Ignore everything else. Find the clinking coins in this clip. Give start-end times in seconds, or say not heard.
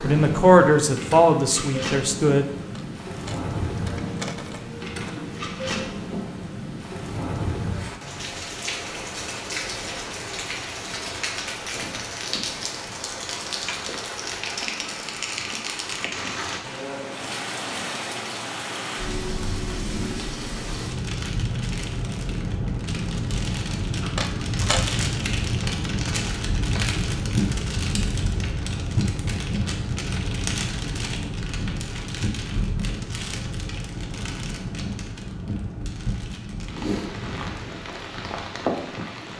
2.8-5.2, 24.0-25.1.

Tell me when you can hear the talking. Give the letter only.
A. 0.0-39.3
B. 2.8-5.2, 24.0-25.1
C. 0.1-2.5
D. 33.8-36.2
C.